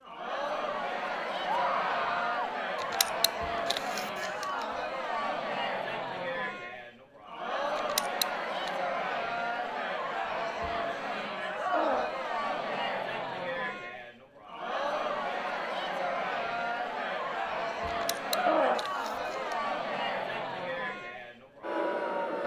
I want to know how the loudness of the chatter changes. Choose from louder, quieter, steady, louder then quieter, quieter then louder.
steady.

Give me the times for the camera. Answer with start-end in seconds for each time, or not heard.
2.8-4.7, 7.8-8.8, 17.9-19.6.